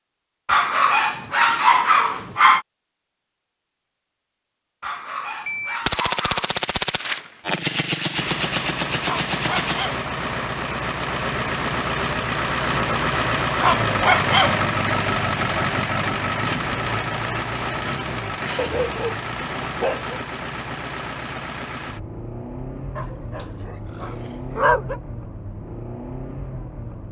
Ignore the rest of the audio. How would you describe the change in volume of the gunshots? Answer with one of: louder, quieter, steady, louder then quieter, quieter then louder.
steady.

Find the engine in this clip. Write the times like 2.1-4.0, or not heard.
8.1-27.0.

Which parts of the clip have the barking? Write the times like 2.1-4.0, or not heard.
0.5-2.6, 4.8-6.6, 9.0-10.1, 13.6-14.6, 18.6-20.1, 22.9-25.0.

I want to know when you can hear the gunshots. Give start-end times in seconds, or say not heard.
5.5-10.1.